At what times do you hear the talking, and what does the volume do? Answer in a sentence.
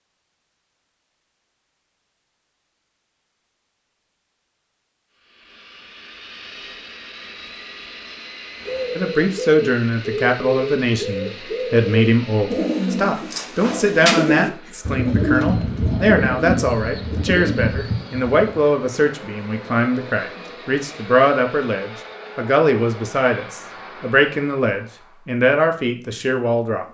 The talking can be heard from 8.9 to 26.8 s, at a steady volume.